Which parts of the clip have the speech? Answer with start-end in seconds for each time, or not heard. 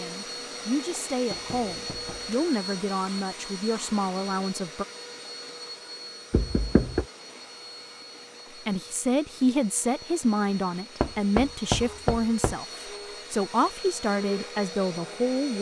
0.0-4.8, 8.7-12.7, 13.3-15.5.